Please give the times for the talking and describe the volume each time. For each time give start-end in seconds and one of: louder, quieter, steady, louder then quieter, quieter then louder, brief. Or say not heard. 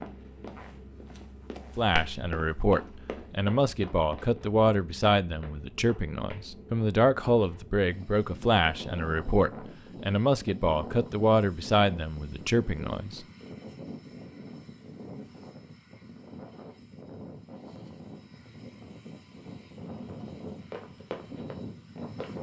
1.8-13.2 steady.